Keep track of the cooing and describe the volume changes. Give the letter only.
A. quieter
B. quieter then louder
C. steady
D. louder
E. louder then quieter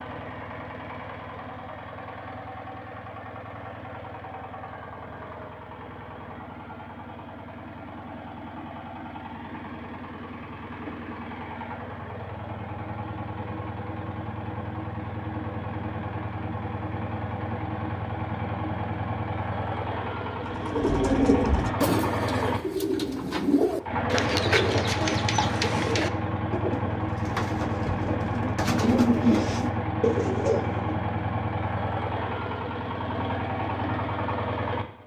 B.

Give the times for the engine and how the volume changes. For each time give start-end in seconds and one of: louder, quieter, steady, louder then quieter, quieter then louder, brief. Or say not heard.
0.0-35.0 louder.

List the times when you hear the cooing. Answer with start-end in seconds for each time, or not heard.
20.5-30.9.